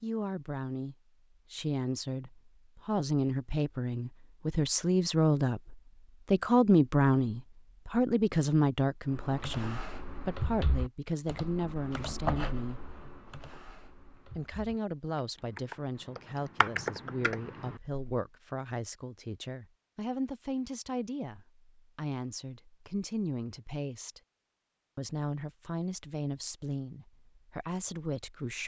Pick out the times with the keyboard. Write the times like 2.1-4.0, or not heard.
9.1-18.2.